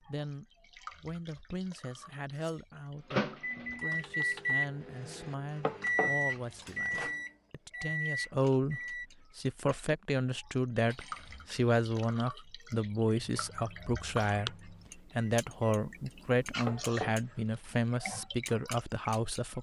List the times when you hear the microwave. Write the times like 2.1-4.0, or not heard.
3.0-9.1, 13.2-16.5.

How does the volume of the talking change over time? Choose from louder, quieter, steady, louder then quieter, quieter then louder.
louder.